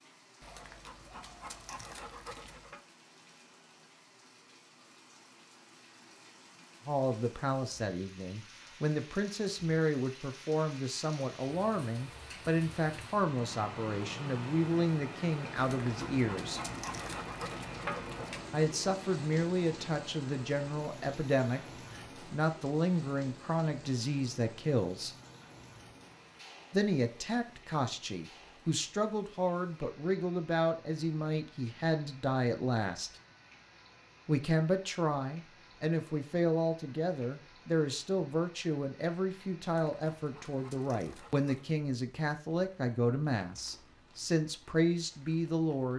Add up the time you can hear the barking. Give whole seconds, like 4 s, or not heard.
7 s.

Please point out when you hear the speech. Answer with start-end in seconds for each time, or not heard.
6.8-16.6, 18.5-25.1, 26.7-33.1, 34.2-45.9.